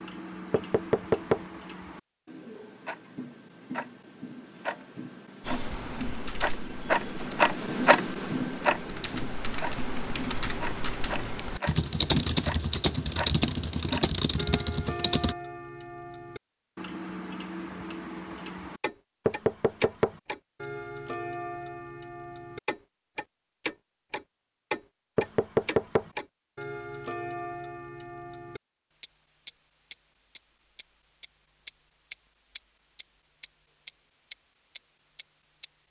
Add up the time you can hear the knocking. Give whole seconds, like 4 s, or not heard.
3 s.